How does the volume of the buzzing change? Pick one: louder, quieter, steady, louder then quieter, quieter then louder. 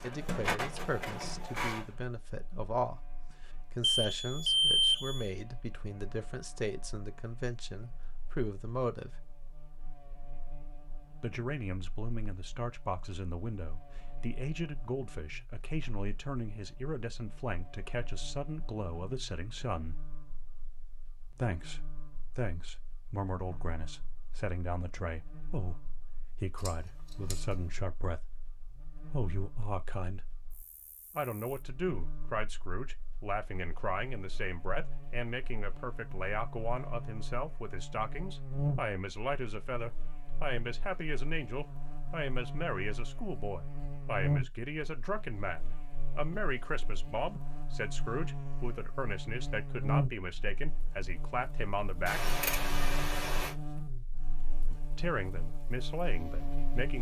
louder.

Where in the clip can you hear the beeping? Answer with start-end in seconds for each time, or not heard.
3.8-5.2.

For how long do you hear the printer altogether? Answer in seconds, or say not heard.
2 s.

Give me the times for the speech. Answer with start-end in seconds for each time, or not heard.
0.0-9.2, 11.2-20.0, 21.3-30.2, 31.1-52.2, 54.7-56.9.